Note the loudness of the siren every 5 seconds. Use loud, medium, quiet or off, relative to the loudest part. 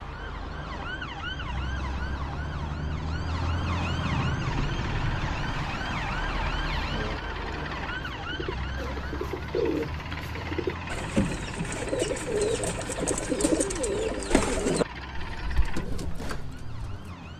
loud, loud, medium, quiet.